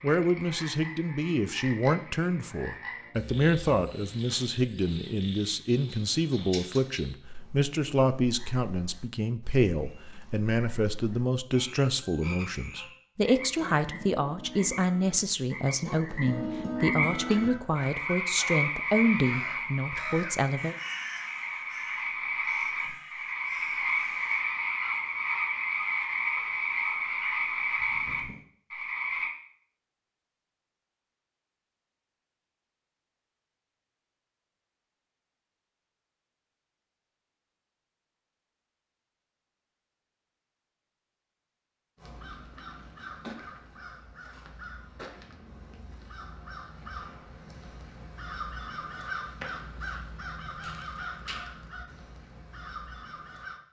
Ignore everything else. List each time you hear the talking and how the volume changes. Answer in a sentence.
The talking can be heard from 0.0 to 20.8 s, at a steady volume.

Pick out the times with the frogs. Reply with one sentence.
You can hear the frogs from 0.0 to 29.3 s.